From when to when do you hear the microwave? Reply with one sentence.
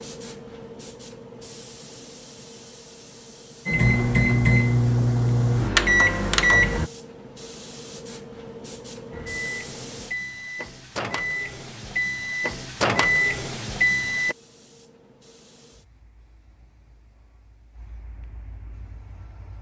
You can hear the microwave from 3.6 to 6.9 s and from 9.1 to 14.3 s.